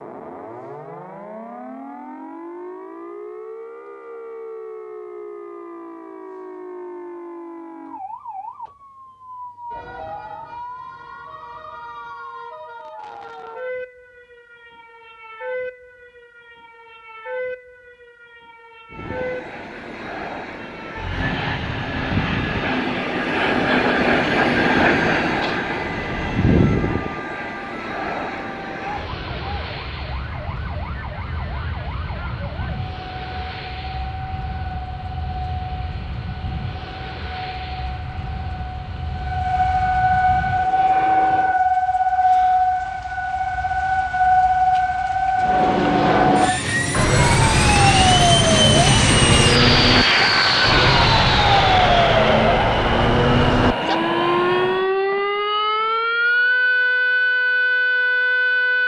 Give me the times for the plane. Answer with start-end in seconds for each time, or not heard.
18.9-41.6, 45.4-54.9.